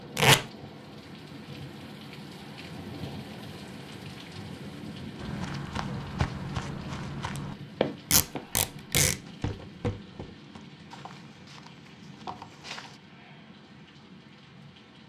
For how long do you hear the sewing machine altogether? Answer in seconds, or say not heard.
not heard.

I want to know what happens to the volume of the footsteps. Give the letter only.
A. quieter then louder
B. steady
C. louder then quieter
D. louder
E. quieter
E.